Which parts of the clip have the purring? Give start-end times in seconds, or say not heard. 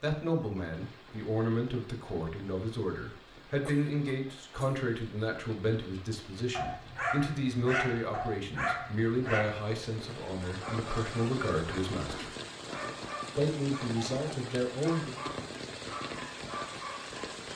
not heard.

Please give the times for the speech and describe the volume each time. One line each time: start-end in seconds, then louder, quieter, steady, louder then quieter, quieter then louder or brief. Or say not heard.
0.0-12.3 steady
13.3-15.2 brief.